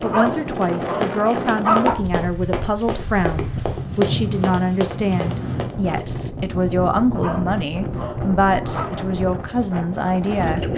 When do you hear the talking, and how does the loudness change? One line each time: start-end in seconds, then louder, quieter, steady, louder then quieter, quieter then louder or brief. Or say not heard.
0.0-10.7 steady.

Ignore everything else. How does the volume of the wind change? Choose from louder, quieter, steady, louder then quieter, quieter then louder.
steady.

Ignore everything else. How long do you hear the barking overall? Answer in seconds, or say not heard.
4 s.